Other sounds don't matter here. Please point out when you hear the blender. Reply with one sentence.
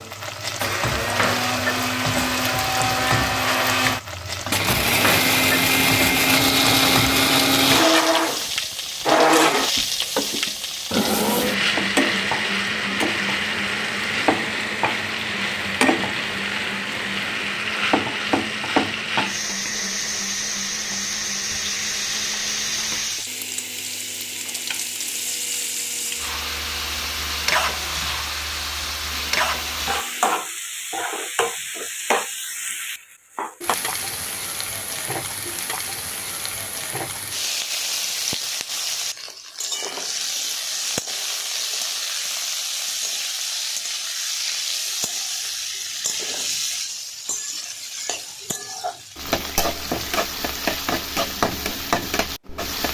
The blender can be heard from 0.0 to 30.4 s.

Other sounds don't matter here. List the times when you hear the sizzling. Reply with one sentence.
The sizzling can be heard from 0.0 to 52.9 s.